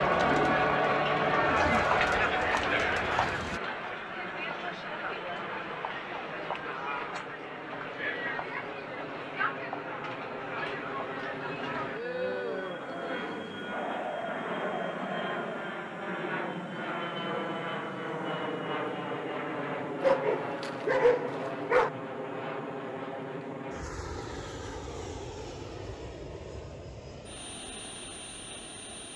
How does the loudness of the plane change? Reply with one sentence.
The loudness of the plane goes up, then down.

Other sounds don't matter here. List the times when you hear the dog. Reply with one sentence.
You can hear the dog from 20.0 to 21.9 s.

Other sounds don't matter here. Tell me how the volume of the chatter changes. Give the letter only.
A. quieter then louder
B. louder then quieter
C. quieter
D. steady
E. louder
C.